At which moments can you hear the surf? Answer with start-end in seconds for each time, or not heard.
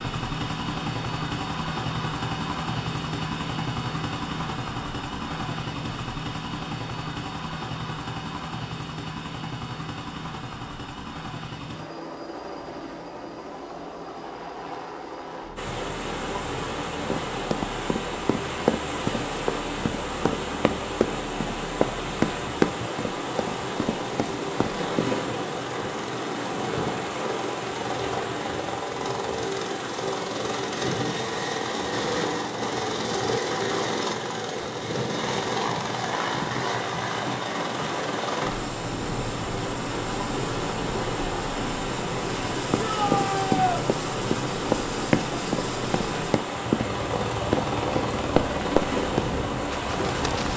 15.6-50.5.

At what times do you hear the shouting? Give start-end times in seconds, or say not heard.
42.8-43.9.